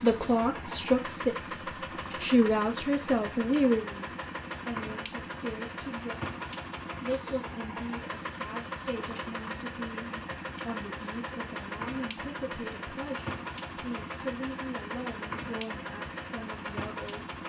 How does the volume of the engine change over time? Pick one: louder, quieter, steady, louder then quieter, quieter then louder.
steady.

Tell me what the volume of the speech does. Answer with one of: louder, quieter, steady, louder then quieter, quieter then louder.
quieter.